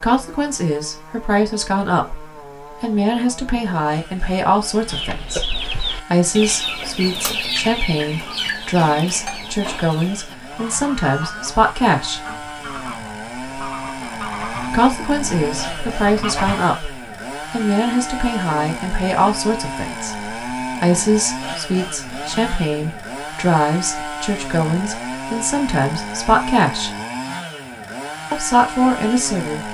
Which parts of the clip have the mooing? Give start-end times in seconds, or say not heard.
not heard.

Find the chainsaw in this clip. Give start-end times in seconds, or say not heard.
0.0-29.6.